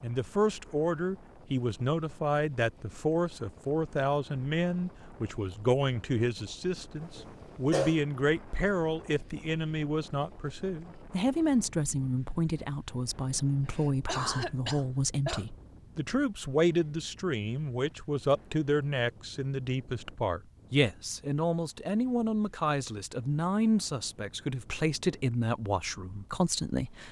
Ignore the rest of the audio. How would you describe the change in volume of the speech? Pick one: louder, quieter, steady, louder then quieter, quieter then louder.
steady.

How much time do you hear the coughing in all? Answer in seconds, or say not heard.
3 s.